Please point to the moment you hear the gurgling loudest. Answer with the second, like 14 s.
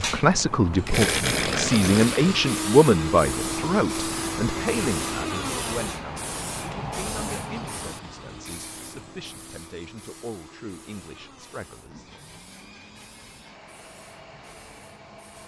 1 s.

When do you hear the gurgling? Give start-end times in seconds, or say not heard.
0.8-2.5.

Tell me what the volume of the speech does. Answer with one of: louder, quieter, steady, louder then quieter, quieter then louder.
quieter.